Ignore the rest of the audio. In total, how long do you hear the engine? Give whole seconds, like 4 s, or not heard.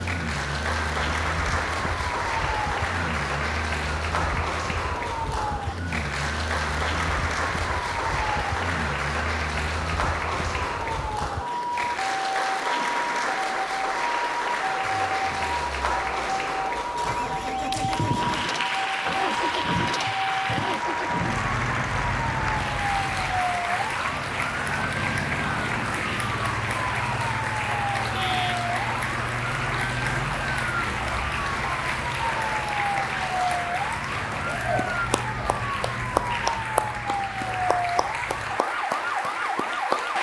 9 s.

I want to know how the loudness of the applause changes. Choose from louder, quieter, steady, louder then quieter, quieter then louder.
steady.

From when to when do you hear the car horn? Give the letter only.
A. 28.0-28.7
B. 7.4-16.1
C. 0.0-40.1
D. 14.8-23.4
A.